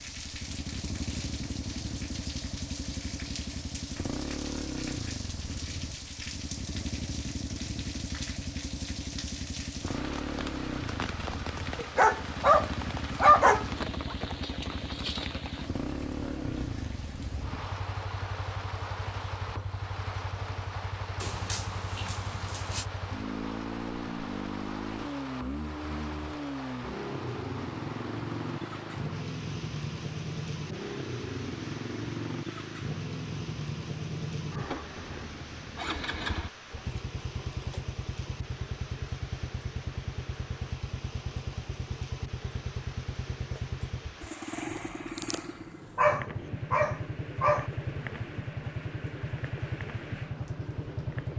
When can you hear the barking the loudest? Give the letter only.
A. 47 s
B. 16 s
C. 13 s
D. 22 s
C.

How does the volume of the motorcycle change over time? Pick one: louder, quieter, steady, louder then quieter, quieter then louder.
steady.